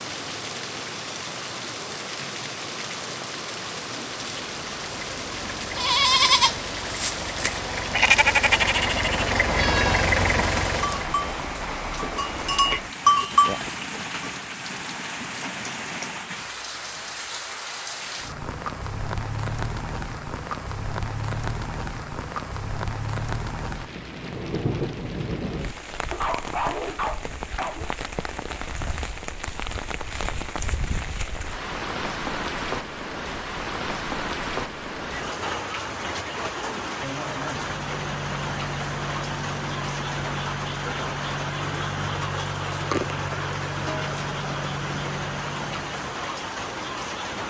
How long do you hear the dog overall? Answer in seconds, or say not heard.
2 s.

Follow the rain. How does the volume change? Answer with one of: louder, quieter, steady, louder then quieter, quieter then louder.
steady.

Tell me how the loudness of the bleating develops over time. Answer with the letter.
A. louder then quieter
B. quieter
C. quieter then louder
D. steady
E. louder
C.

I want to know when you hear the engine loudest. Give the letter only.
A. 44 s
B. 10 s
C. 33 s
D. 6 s
B.